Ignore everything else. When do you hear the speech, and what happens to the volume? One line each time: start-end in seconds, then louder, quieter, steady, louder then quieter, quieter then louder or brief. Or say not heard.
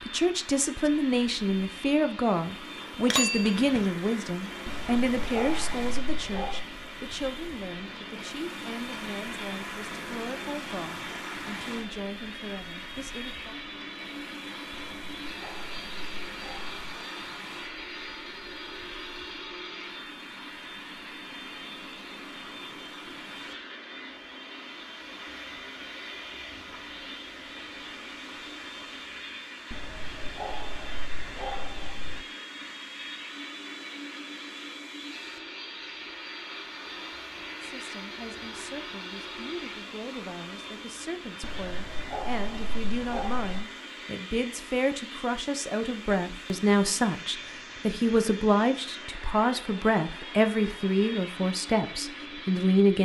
0.0-13.6 quieter
37.6-53.0 louder.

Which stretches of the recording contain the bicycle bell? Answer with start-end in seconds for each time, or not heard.
3.0-3.9.